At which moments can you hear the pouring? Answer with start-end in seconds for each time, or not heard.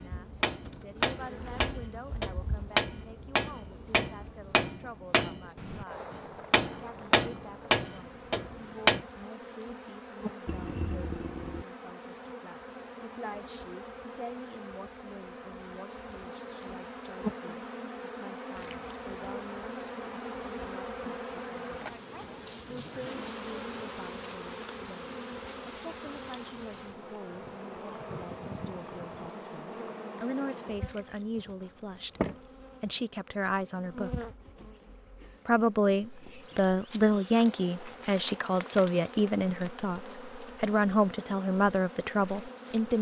10.4-11.7, 18.6-19.7, 30.8-32.4.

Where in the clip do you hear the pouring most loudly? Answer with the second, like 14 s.
11 s.